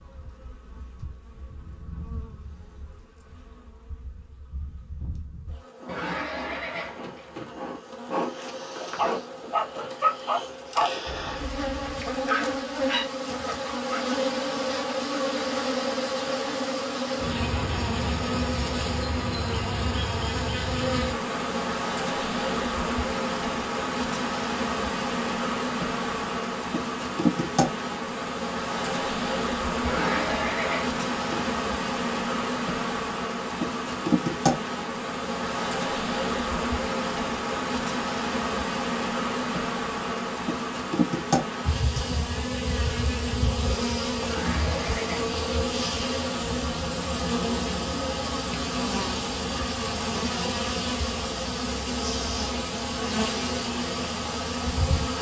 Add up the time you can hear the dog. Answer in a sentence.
The dog can be heard for 5 seconds in total.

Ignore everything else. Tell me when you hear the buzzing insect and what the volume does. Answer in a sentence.
The buzzing insect can be heard from 0.0 to 55.1 s, getting louder.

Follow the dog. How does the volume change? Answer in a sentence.
The volume of the dog goes down, then up.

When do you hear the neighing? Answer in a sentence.
The neighing can be heard from 5.8 to 7.8 s, from 29.8 to 31.6 s and from 44.2 to 45.4 s.